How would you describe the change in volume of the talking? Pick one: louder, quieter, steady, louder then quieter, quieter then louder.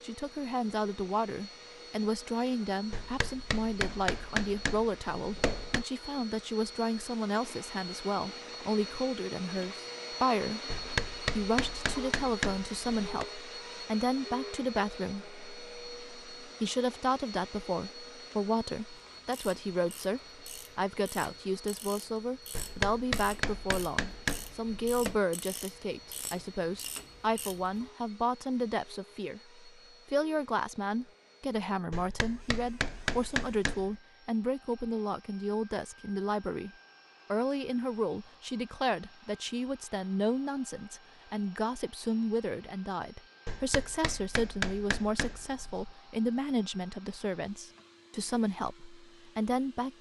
steady.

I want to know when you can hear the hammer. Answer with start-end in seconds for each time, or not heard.
2.9-5.8, 10.7-13.2, 22.6-25.1, 31.9-34.0, 43.5-45.9.